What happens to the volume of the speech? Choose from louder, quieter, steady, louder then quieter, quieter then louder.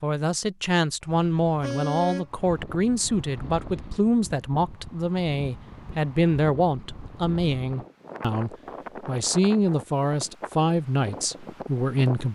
steady.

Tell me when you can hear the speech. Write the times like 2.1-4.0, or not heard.
0.0-12.3.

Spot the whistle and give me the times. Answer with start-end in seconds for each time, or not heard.
not heard.